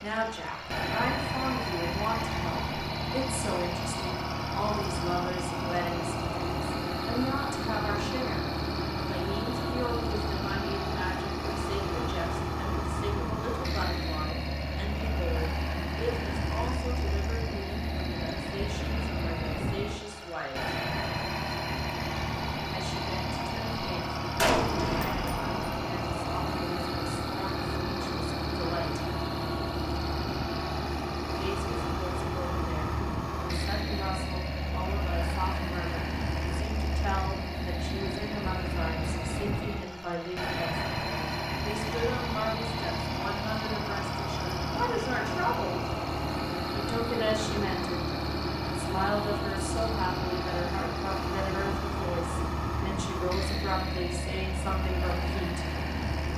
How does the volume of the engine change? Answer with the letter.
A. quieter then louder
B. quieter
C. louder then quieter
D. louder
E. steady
E.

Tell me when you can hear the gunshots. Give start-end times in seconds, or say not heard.
24.4-25.6.